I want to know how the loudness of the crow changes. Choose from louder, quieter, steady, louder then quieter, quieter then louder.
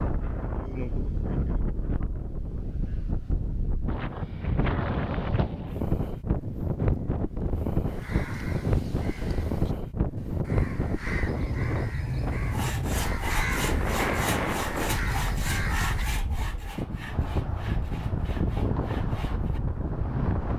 louder.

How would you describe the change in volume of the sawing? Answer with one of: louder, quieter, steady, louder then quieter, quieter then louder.
quieter.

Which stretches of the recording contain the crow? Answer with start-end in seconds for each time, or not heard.
7.8-16.1.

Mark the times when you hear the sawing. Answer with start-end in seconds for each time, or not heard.
12.4-19.6.